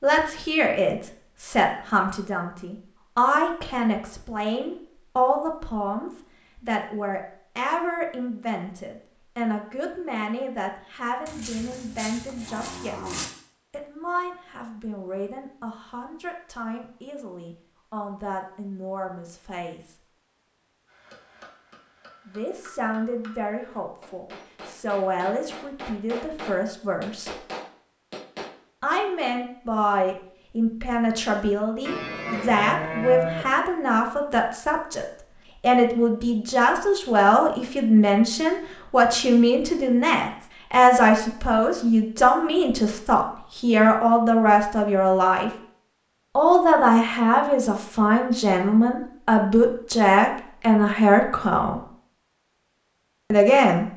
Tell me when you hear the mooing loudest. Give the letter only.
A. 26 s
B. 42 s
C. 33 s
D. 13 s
C.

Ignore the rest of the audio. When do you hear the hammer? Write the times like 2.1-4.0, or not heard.
20.9-28.6.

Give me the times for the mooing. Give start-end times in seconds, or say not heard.
11.2-13.2, 31.9-33.5.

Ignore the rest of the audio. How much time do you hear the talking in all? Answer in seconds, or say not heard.
47 s.